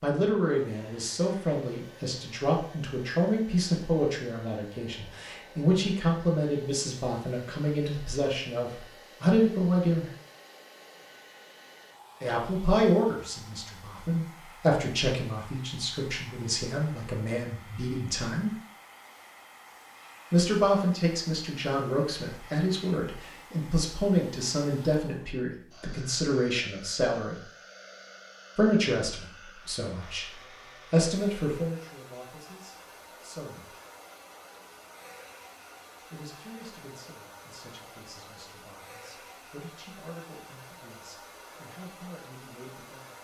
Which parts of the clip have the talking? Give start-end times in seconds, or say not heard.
0.0-10.1, 12.2-18.6, 20.3-27.4, 28.6-33.8, 36.1-43.1.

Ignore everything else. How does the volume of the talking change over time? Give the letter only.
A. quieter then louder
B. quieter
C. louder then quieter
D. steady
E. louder
B.